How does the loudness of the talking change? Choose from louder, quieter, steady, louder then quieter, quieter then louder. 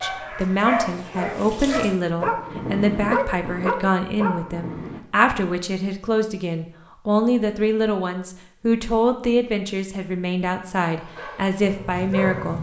steady.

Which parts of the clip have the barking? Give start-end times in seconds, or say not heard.
0.0-5.0, 10.9-12.5.